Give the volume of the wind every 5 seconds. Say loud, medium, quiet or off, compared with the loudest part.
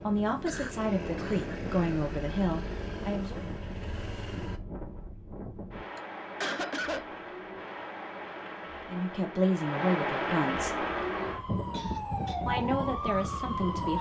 medium, medium, loud.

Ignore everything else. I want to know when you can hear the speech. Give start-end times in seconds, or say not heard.
0.0-3.5, 8.8-10.8, 12.4-13.9.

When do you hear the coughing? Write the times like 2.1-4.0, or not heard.
0.5-1.6, 6.0-7.0, 11.2-12.4.